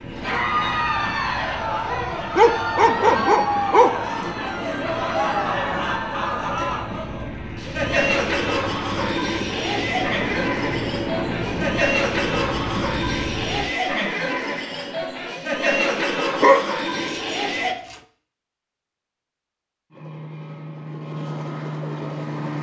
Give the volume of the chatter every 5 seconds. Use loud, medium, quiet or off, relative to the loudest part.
loud, loud, loud, loud, off.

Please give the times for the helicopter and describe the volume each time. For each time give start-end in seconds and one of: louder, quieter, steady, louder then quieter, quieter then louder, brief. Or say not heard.
0.0-13.7 louder
19.9-22.5 brief.